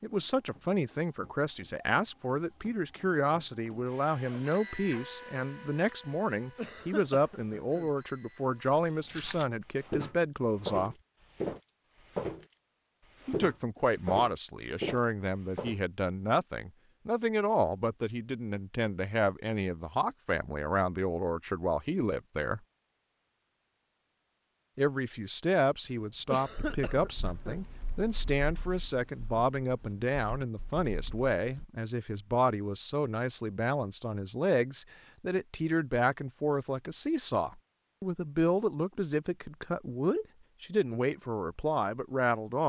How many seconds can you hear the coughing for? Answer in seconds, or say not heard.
3 s.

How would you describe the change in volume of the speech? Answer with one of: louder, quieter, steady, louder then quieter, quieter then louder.
steady.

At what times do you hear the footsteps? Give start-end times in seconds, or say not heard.
8.6-12.6, 13.2-15.8.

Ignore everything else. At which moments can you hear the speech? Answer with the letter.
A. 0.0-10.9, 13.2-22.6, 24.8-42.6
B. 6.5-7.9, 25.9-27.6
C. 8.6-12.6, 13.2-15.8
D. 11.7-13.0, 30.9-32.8
A.